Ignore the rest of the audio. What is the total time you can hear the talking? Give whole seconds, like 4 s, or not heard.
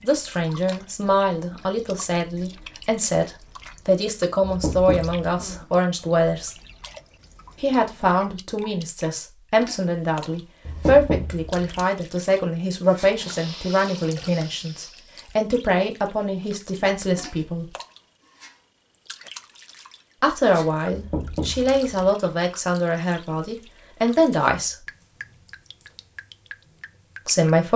22 s.